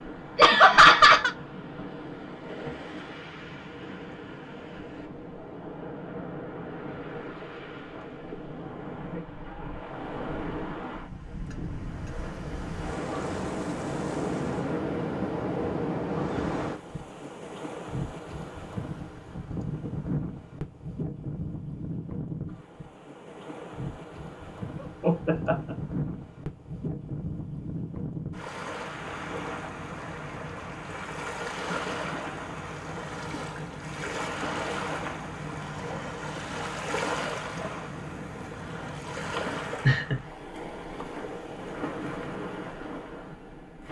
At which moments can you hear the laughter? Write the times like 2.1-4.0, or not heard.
0.3-1.3, 24.8-25.8, 39.4-40.2.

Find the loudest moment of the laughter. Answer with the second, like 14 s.
1 s.